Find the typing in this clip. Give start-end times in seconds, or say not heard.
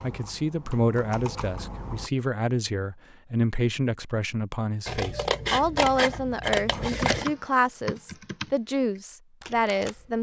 0.0-2.1, 6.7-10.1.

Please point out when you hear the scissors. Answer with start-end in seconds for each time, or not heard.
4.8-7.3.